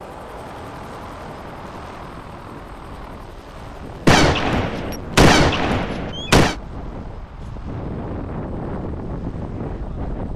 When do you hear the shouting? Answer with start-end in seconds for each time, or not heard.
not heard.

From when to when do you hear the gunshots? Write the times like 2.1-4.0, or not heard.
4.0-6.5.